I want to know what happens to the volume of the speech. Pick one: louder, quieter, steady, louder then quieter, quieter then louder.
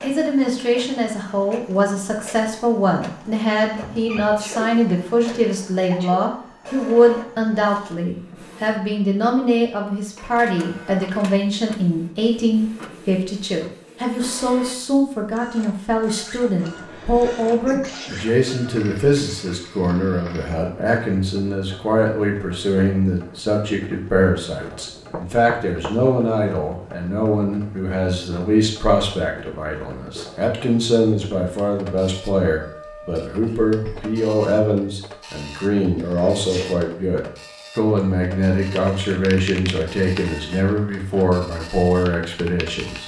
steady.